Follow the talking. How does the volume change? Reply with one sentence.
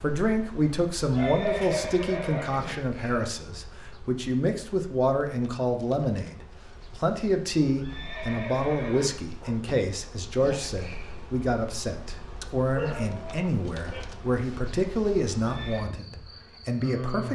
The loudness of the talking stays about the same.